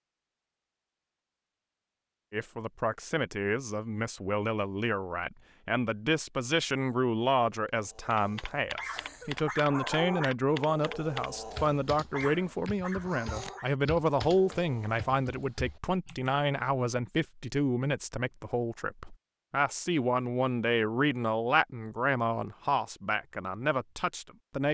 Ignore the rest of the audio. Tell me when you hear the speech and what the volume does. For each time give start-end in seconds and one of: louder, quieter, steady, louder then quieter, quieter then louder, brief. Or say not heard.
2.3-24.7 steady.